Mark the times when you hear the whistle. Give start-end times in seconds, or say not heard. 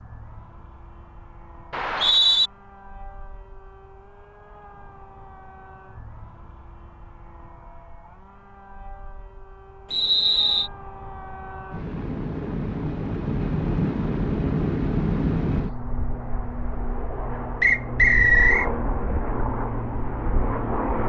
1.7-2.5, 9.9-10.7, 17.6-18.7.